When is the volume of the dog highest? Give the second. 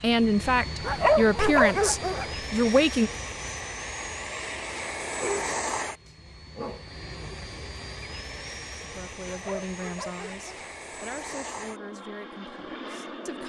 1 s.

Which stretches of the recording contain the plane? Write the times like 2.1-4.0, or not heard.
0.0-13.4.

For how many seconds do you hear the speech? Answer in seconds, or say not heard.
8 s.